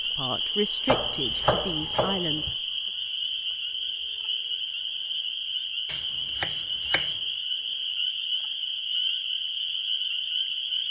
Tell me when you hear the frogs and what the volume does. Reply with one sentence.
You can hear the frogs from 0.0 to 10.8 s, at a steady volume.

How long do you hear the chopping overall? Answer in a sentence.
The chopping can be heard for 3 seconds in total.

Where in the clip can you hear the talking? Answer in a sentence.
You can hear the talking from 0.0 to 2.5 s.